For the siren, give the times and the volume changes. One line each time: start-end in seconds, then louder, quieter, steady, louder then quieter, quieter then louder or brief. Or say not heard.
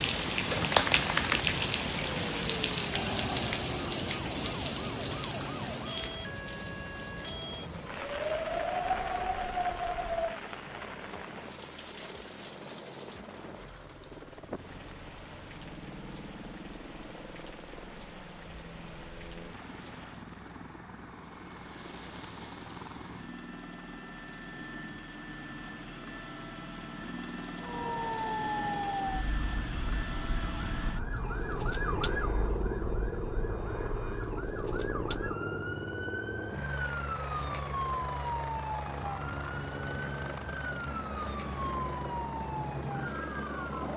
2.0-10.4 louder
27.6-43.9 steady.